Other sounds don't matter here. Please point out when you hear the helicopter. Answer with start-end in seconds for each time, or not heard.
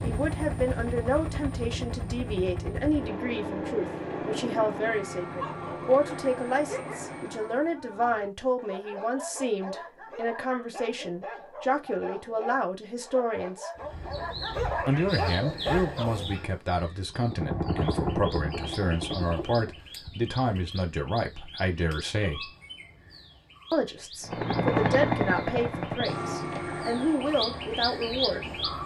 0.0-7.8, 17.2-19.8, 24.2-28.8.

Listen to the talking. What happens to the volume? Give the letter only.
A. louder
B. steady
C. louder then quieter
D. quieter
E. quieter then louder
B.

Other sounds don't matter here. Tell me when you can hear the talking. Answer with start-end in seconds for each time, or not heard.
0.0-13.7, 14.8-22.5, 23.7-28.8.